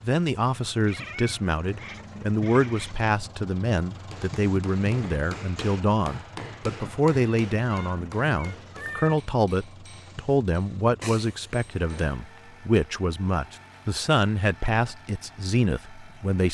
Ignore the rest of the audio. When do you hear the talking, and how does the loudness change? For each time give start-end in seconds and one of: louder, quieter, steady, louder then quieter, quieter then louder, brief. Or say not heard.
0.0-16.4 steady.